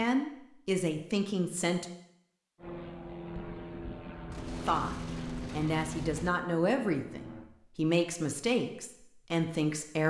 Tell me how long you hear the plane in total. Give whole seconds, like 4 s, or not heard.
5 s.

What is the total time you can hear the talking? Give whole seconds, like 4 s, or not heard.
7 s.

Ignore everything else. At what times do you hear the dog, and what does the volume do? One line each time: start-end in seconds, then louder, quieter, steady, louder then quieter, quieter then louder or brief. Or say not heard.
not heard.